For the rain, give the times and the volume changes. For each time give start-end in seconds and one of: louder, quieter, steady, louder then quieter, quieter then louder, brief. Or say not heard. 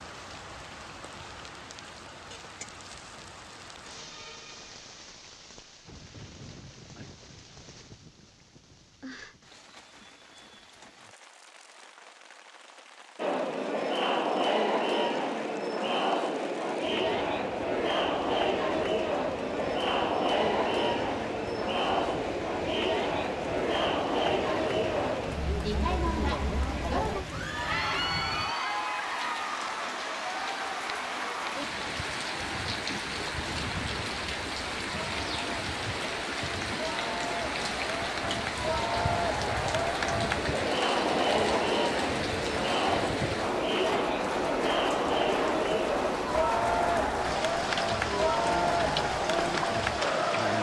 0.0-50.5 louder.